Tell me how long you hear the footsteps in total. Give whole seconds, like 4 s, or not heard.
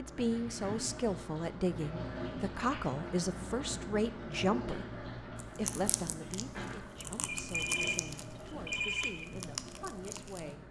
not heard.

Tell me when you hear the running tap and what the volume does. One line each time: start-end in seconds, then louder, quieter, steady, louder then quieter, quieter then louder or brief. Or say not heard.
0.0-10.6 quieter.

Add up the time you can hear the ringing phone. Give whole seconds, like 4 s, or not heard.
2 s.